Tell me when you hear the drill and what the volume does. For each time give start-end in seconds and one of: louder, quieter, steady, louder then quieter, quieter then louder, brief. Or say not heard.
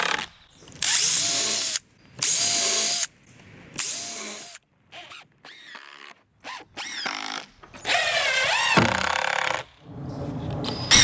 0.0-10.9 quieter then louder.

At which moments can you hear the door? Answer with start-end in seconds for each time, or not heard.
7.6-9.2.